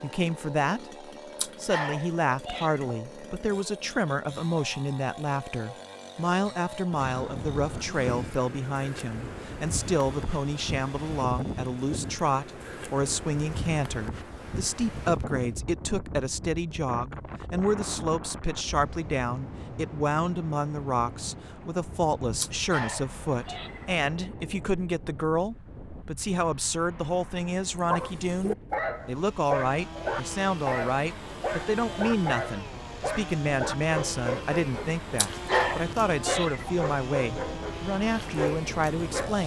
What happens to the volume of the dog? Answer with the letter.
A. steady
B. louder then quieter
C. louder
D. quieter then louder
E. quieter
A.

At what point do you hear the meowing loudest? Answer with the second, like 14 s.
36 s.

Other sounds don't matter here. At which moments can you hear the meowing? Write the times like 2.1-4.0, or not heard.
1.4-3.0, 22.4-24.0, 35.1-36.8.